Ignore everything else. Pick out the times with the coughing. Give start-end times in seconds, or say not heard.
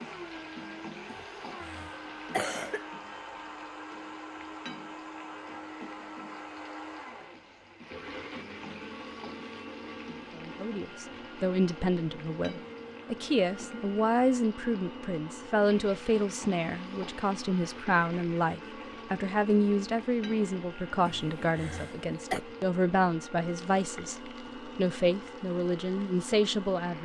1.1-2.9, 21.1-22.4.